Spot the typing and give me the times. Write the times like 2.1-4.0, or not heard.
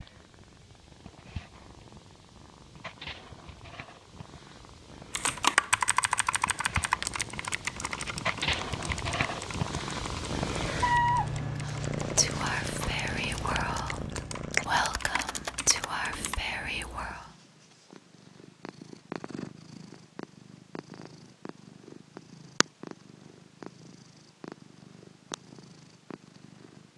5.1-16.4.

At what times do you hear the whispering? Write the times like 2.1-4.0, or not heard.
11.7-17.2.